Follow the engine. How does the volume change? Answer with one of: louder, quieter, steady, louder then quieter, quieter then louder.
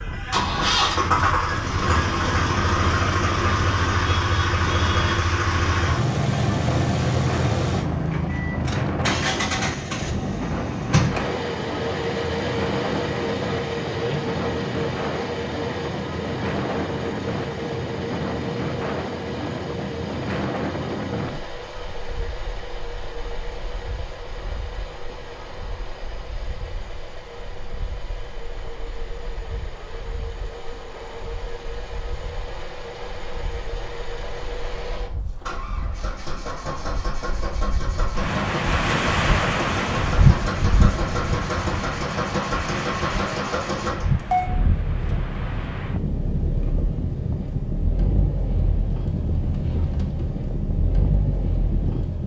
quieter then louder.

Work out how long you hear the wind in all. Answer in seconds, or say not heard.
52 s.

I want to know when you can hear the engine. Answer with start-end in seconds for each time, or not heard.
0.0-52.2.